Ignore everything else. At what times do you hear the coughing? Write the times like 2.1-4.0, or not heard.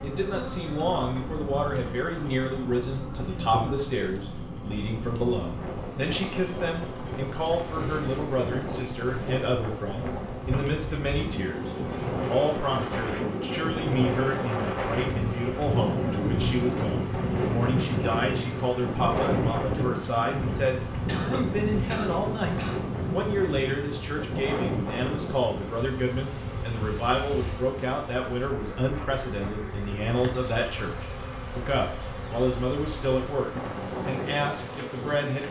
20.9-22.9.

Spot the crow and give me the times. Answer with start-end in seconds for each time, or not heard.
not heard.